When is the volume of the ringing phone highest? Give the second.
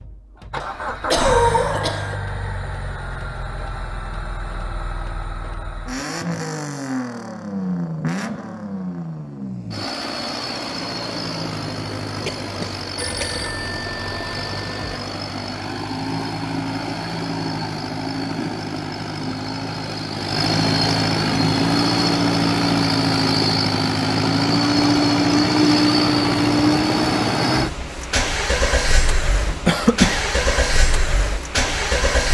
13 s.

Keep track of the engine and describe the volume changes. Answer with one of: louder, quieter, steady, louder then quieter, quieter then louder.
louder.